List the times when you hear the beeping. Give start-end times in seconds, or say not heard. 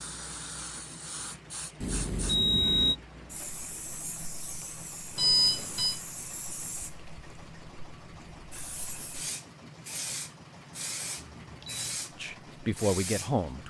1.8-3.0, 5.2-6.0, 11.2-12.1.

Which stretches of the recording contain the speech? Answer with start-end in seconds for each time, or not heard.
12.2-13.6.